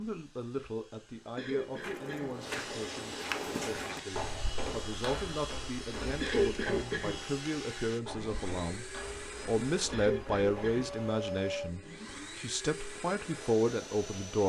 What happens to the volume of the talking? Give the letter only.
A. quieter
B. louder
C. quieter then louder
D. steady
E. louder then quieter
B.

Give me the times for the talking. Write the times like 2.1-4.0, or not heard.
0.0-8.8, 9.4-14.4.